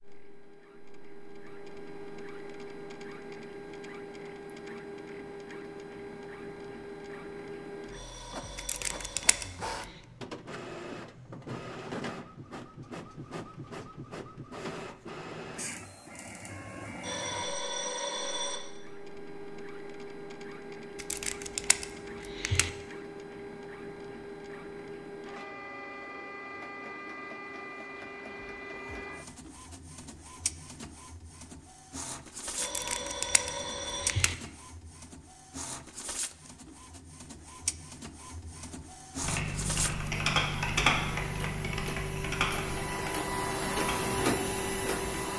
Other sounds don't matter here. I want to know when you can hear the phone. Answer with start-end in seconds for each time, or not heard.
7.9-9.4, 17.0-18.6, 32.5-34.1.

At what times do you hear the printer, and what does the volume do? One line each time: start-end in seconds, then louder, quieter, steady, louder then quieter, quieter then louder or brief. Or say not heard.
0.0-45.3 louder.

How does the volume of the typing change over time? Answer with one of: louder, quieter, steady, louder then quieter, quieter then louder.
quieter.